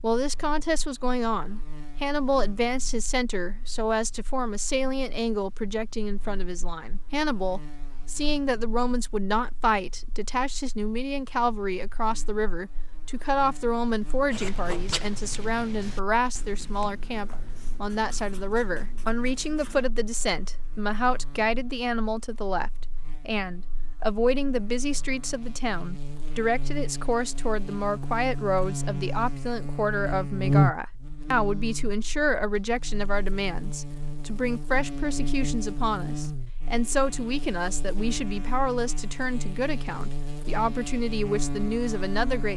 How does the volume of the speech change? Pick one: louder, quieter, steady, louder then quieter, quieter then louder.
steady.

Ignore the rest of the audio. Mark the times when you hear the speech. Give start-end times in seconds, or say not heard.
0.0-42.5.